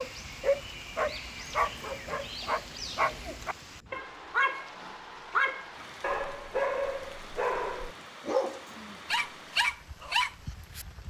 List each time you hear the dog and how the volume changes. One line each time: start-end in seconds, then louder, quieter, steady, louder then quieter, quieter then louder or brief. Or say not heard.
0.0-10.8 steady.